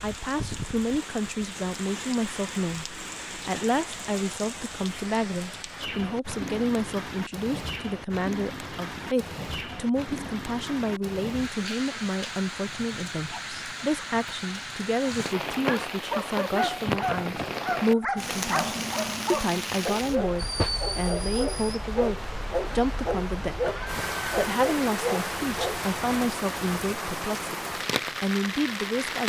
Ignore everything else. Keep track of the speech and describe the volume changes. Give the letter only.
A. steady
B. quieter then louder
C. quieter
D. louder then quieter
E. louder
A.